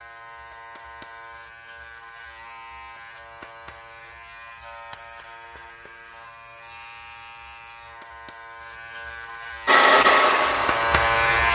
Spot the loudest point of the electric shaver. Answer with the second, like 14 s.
11 s.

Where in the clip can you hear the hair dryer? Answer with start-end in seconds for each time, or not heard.
9.7-11.4.